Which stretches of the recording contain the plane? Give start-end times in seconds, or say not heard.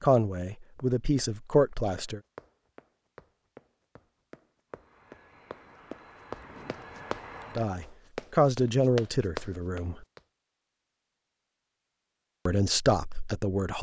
4.7-7.7.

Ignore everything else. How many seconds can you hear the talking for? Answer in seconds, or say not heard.
6 s.